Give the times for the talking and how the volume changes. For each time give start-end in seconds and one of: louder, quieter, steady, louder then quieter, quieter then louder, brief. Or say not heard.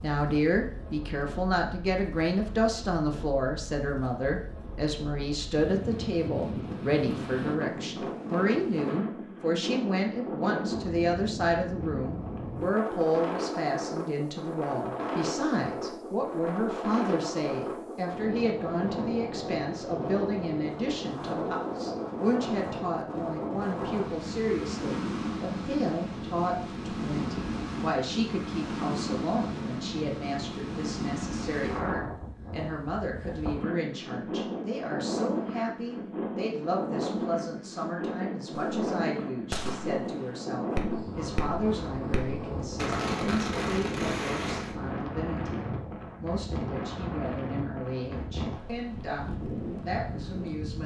0.0-50.8 quieter.